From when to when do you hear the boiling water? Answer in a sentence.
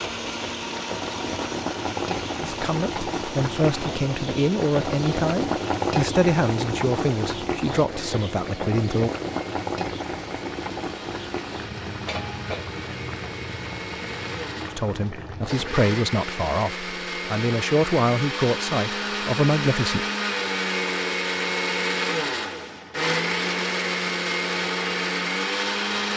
You can hear the boiling water from 0.0 to 15.6 s.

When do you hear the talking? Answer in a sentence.
The talking can be heard from 2.4 to 9.1 s and from 14.7 to 20.1 s.